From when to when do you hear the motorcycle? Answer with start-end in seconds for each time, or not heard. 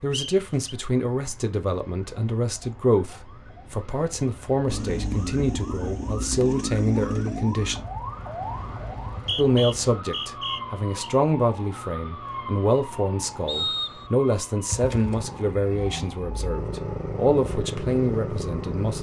4.7-9.3, 14.7-18.9.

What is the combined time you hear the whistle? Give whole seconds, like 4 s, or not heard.
3 s.